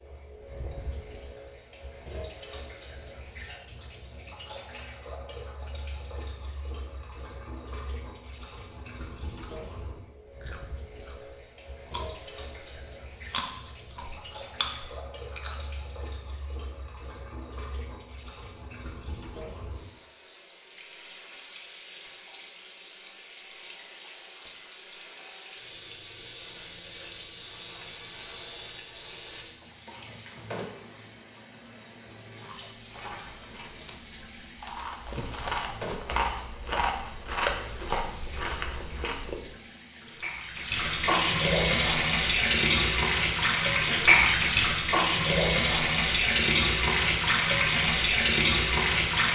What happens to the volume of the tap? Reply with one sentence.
The loudness of the tap goes up.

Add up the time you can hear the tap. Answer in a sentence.
The tap can be heard for 49 seconds in total.